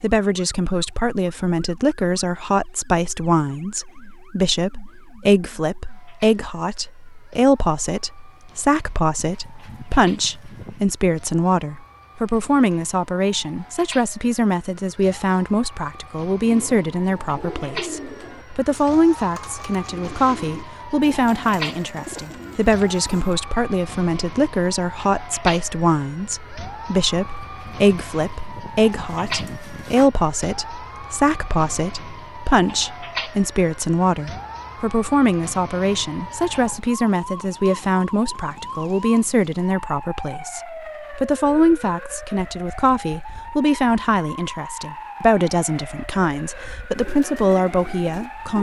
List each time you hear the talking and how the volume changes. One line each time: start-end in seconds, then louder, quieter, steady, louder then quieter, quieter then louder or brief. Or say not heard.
0.0-48.5 steady.